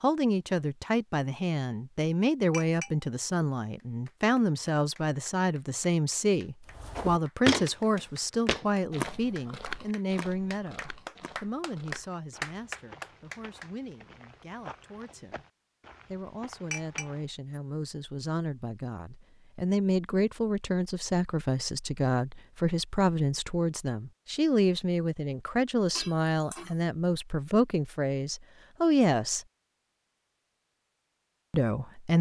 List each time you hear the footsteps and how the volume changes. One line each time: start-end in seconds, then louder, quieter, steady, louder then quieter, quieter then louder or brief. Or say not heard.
6.8-17.3 quieter.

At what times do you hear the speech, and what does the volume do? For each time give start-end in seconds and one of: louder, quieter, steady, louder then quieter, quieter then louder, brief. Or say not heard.
0.0-15.4 quieter
16.1-29.4 louder
31.5-32.1 brief.